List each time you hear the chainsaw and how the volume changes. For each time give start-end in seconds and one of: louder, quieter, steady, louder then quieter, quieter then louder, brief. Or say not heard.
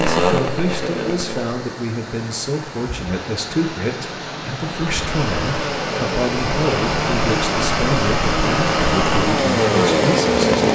0.0-1.6 brief
4.8-10.6 louder.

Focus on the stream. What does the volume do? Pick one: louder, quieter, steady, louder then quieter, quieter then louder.
louder.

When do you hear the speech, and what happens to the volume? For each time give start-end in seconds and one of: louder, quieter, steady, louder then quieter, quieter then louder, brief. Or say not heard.
0.0-10.6 steady.